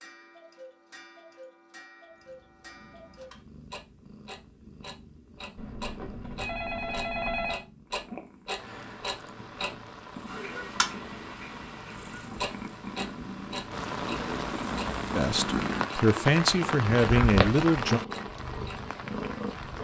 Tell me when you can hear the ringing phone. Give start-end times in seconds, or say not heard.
5.5-7.7.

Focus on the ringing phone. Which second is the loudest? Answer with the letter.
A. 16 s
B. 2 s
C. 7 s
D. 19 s
C.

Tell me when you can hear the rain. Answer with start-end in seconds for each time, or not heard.
8.6-19.7.